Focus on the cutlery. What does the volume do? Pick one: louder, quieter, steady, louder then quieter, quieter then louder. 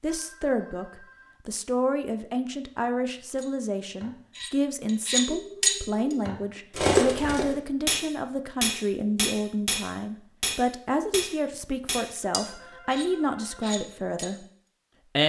quieter.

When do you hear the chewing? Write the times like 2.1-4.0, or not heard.
not heard.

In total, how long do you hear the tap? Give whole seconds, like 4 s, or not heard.
not heard.